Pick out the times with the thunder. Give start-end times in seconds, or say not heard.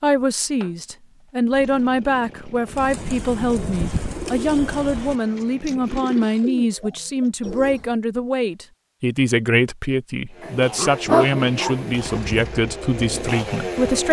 not heard.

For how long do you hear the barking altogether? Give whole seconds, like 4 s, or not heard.
2 s.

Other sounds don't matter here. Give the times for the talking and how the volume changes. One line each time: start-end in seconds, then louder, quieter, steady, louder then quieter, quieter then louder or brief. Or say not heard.
0.0-14.0 steady.